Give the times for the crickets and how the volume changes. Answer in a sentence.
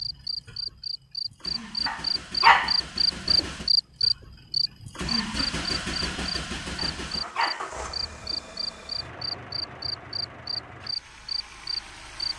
You can hear the crickets from 0.0 to 12.3 s, getting louder then quieter.